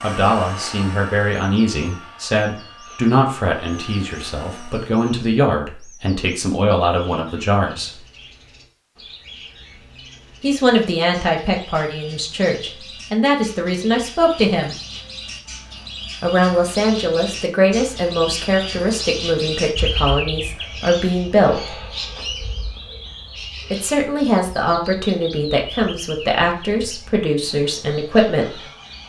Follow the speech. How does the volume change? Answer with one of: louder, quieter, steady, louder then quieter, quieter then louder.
steady.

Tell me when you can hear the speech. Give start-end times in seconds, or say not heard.
0.0-8.0, 10.4-14.8, 16.2-21.7, 23.7-28.6.